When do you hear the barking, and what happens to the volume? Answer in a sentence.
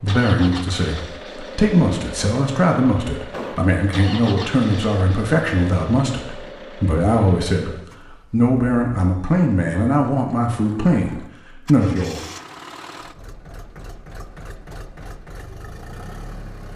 You can't hear the barking here.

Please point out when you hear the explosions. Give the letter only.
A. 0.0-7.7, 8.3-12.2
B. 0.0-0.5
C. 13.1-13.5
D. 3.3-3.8
D.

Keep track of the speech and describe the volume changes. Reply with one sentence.
The loudness of the speech stays about the same.